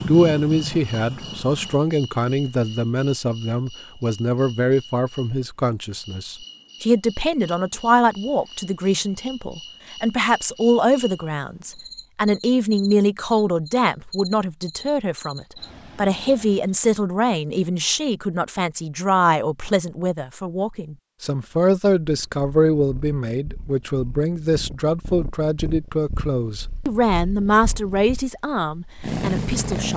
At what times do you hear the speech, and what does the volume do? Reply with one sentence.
The speech can be heard from 0.1 to 29.9 s, at a steady volume.